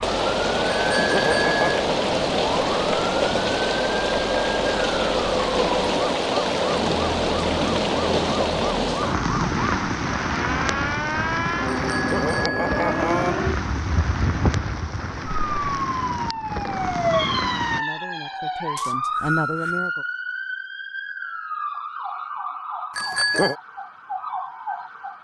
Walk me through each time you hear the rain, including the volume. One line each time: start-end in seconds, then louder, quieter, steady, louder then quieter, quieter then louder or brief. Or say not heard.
0.0-17.9 quieter.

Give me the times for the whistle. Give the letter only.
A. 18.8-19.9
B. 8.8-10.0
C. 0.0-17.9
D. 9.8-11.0
A.